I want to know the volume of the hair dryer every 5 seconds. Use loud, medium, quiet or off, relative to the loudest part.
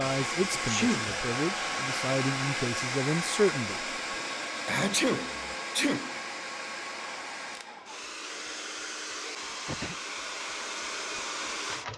loud, medium, loud.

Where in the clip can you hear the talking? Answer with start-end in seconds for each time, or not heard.
0.0-3.9.